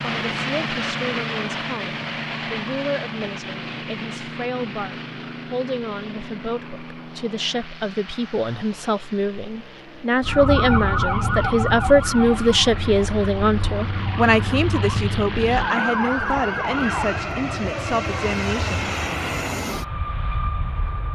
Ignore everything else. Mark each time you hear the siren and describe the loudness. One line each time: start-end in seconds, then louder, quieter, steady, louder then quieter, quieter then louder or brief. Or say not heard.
10.2-17.2 quieter then louder.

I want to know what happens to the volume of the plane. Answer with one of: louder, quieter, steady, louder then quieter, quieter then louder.
quieter then louder.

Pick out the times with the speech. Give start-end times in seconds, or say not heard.
0.0-18.9.